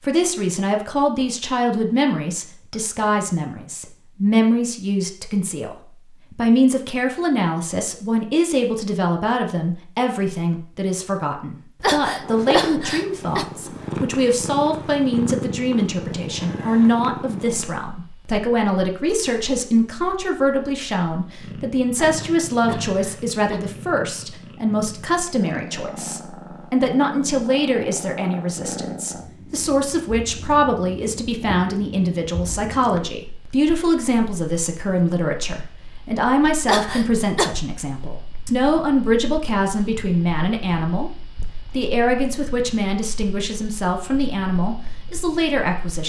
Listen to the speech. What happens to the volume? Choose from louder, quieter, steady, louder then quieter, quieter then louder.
steady.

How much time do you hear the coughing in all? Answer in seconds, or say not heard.
4 s.